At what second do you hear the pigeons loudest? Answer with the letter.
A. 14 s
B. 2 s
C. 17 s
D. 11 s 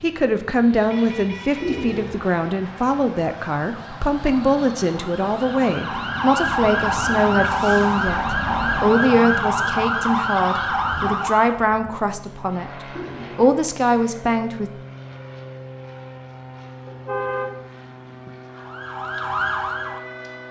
B.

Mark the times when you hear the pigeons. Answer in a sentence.
You can hear the pigeons from 1.6 to 2.1 s and from 12.9 to 13.4 s.